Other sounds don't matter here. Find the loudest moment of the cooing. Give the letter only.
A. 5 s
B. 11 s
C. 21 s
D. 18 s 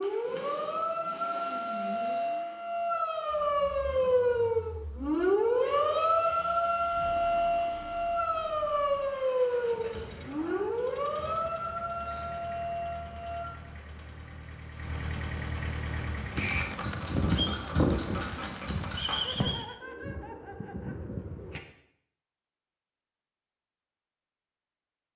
D.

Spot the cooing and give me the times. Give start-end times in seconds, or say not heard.
16.4-21.6.